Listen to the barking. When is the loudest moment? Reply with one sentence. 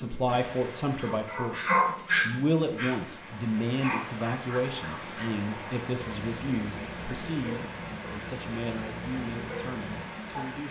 The loudest moment of the barking is at 2 seconds.